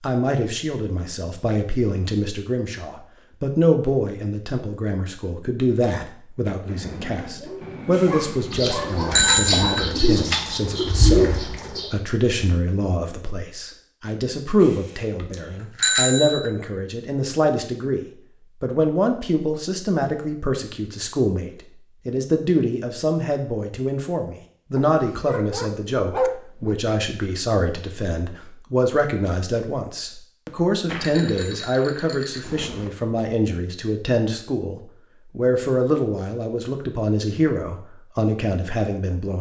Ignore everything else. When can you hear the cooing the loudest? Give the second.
11 s.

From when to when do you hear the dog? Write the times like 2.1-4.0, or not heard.
7.6-9.9, 24.8-26.8.